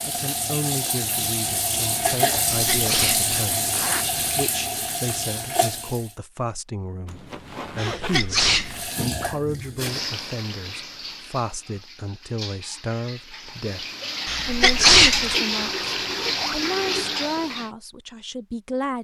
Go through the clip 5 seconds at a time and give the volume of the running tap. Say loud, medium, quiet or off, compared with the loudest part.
loud, medium, medium, loud.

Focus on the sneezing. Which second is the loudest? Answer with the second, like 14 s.
15 s.